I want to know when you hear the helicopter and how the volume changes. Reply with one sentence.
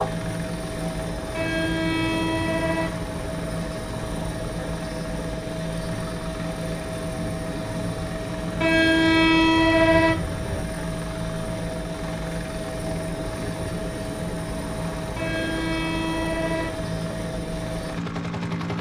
You can hear the helicopter from 0.0 to 18.7 s, at a steady volume.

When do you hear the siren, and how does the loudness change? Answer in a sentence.
You can't hear the siren here.